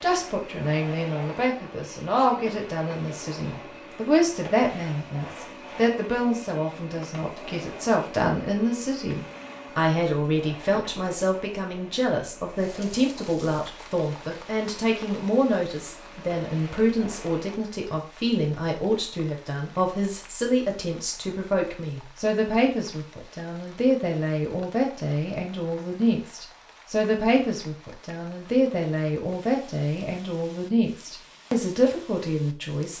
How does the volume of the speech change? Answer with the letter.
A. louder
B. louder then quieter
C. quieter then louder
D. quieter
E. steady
E.